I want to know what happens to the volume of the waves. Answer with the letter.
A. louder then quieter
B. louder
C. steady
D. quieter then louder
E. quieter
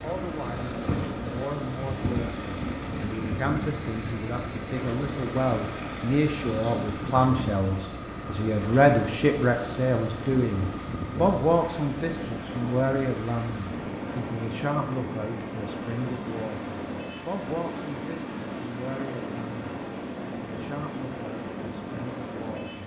C.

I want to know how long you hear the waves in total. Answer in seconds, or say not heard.
23 s.